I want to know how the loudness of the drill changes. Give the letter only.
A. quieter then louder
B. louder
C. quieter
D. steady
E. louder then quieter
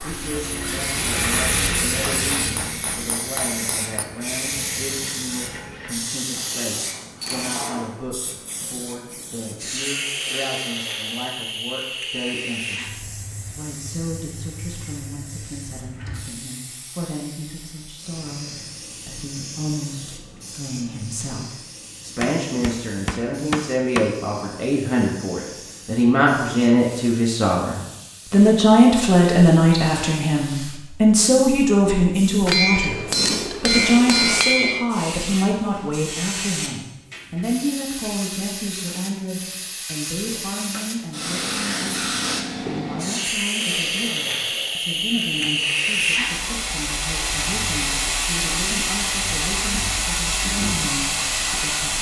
C.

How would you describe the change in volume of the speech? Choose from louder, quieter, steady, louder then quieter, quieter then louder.
louder then quieter.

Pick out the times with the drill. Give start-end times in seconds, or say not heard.
0.0-7.8.